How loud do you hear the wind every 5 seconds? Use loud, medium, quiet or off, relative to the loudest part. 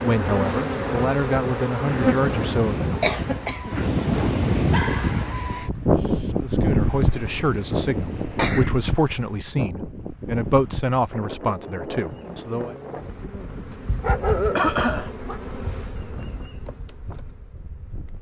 loud, loud, medium, quiet.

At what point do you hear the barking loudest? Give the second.
14 s.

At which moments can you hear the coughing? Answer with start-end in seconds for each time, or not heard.
3.0-3.8, 7.1-8.8, 14.6-15.1.